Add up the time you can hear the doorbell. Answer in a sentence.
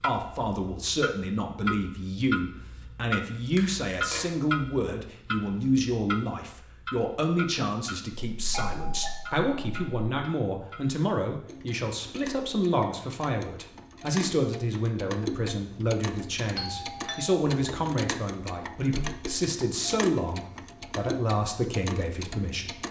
You can hear the doorbell for 3 seconds altogether.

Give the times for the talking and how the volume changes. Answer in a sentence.
The talking can be heard from 0.0 to 22.8 s, at a steady volume.